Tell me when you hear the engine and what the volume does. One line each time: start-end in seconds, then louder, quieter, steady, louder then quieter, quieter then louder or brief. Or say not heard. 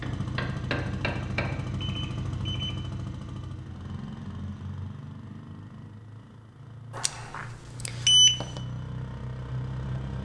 0.0-10.1 quieter then louder.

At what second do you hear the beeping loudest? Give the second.
8 s.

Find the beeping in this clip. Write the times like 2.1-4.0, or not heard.
1.8-2.8, 7.0-8.4.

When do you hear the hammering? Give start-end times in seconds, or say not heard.
0.0-1.6.